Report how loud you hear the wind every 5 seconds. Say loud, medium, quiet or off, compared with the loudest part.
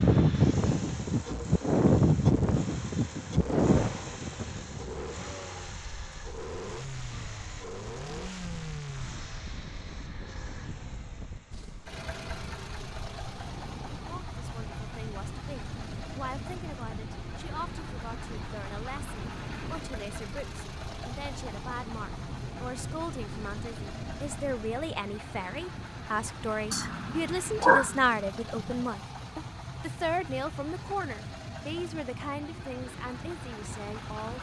loud, quiet, quiet, quiet, quiet, off, off.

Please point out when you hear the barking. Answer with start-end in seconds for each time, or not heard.
26.7-28.8.